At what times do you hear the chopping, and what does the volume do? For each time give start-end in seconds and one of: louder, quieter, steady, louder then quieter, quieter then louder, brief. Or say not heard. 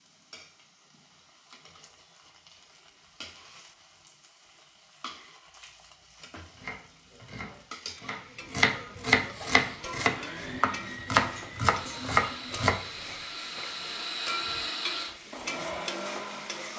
6.5-12.8 louder.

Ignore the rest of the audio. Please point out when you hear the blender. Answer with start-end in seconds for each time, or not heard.
9.3-16.7.